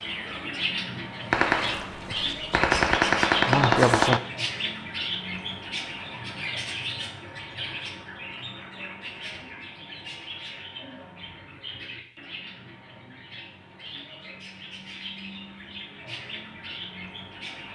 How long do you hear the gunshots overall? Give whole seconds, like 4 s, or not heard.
3 s.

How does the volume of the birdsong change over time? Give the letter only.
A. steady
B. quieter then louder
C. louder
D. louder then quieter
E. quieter
E.